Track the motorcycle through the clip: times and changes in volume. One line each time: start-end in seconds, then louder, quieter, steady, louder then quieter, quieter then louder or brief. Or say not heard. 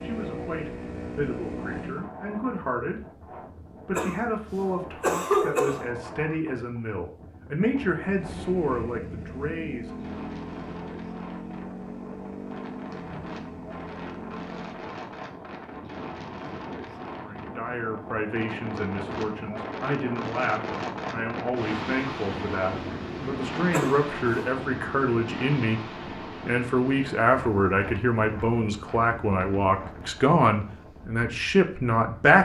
0.0-2.1 brief
8.1-14.9 steady.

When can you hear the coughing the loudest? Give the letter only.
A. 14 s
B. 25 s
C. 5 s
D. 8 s
C.